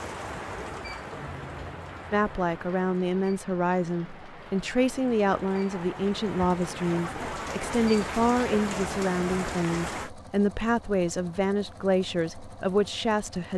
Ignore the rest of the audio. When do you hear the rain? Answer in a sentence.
The rain can be heard from 0.0 to 10.1 s.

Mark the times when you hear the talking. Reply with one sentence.
You can hear the talking from 2.1 to 13.5 s.